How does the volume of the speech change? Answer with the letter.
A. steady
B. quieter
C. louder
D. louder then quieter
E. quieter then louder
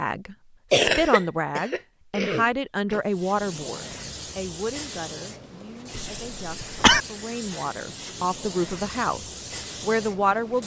E.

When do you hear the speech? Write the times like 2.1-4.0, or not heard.
0.0-10.6.